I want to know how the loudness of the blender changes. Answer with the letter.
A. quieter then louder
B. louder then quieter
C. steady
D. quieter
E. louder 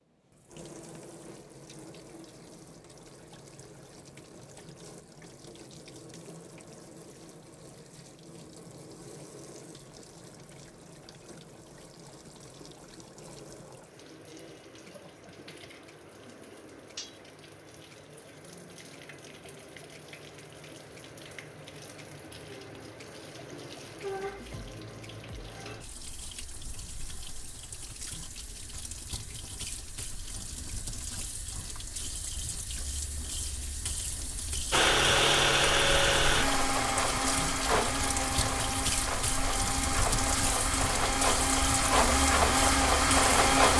A.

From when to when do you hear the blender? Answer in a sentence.
The blender can be heard from 34.7 to 43.7 s.